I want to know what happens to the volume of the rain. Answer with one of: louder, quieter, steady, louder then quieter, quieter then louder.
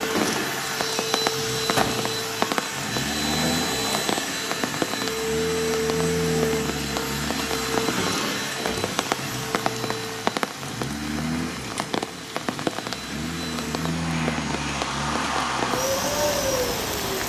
steady.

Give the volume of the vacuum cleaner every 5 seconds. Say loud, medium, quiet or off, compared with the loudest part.
loud, loud, medium, loud.